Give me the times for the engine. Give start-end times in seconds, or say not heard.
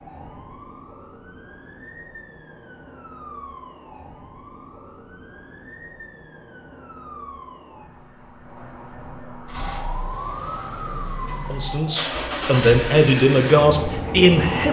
9.4-14.6.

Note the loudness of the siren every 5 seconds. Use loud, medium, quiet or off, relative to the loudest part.
medium, medium, loud.